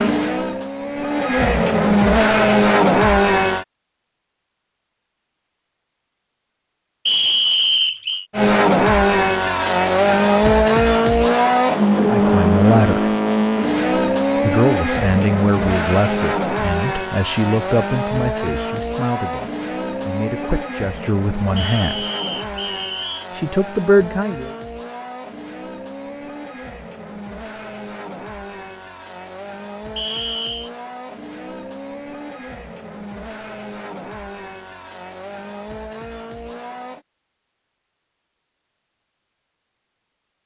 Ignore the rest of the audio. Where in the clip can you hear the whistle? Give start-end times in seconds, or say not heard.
7.0-8.2, 21.6-23.2, 29.9-30.7.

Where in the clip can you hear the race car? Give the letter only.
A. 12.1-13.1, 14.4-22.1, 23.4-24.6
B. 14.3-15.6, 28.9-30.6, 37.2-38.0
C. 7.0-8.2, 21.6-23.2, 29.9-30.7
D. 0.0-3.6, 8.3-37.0
D.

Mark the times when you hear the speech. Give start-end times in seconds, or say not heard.
12.1-13.1, 14.4-22.1, 23.4-24.6.